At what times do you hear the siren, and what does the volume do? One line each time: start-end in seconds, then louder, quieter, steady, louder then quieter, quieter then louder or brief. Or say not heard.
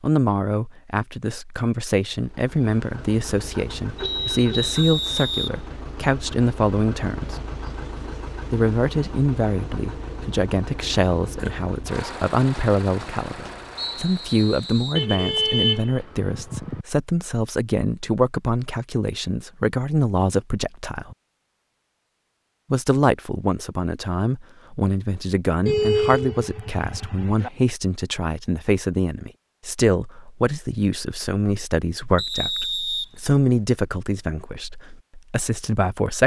not heard.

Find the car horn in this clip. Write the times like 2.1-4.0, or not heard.
4.0-4.8, 14.9-16.9, 25.6-27.5.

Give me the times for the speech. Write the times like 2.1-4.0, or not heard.
0.0-7.3, 8.5-21.1, 22.7-36.2.